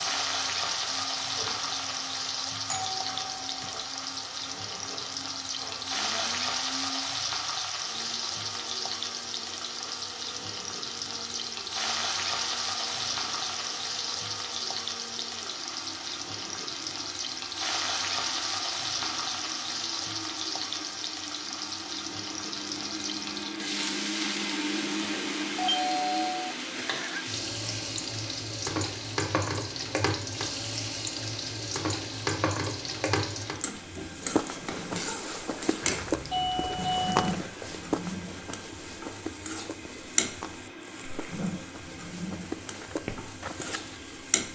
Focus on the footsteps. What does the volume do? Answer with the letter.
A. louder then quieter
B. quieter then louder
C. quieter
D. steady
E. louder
B.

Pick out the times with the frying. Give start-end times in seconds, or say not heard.
0.0-44.5.